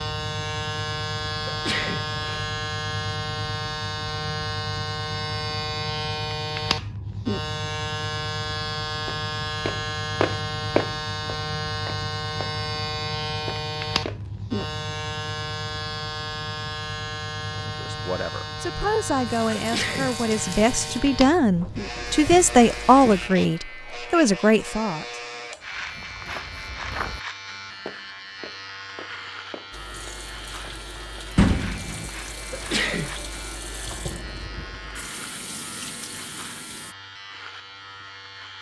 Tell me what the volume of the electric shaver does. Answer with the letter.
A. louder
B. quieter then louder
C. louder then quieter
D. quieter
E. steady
D.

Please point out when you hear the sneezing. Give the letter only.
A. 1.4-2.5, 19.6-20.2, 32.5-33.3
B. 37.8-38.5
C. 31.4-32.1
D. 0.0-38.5
A.